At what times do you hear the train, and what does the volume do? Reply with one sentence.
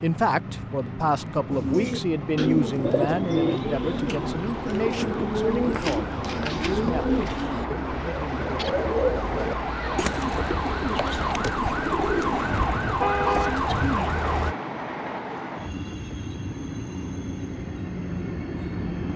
You can hear the train from 0.0 to 19.1 s, at a steady volume.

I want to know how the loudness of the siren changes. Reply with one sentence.
The volume of the siren goes up.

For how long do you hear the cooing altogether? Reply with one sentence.
You can hear the cooing for 11 seconds altogether.